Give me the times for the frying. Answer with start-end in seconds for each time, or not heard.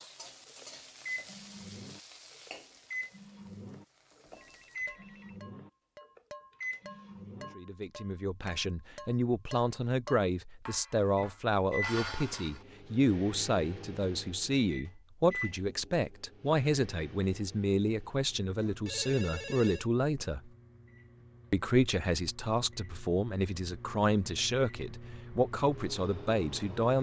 0.0-4.9.